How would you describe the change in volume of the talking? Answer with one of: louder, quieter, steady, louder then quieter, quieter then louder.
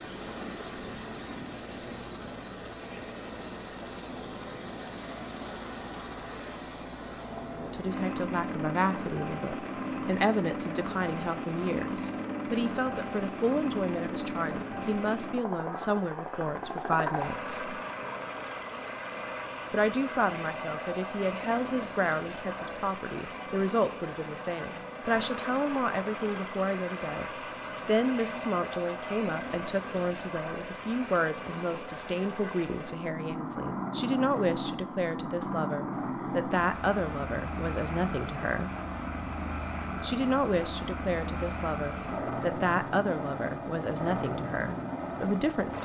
steady.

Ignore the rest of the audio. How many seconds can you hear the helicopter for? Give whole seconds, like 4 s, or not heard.
46 s.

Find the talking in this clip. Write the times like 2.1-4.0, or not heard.
7.5-17.8, 19.7-27.2, 27.9-38.8, 40.0-45.7.